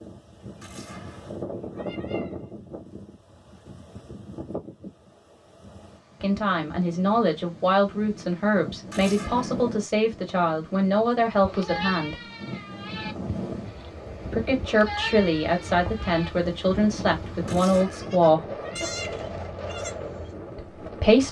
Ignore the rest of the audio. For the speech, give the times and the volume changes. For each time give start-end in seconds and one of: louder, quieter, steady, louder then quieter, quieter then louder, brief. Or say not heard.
6.2-12.2 steady
14.3-18.6 steady
20.6-21.2 brief.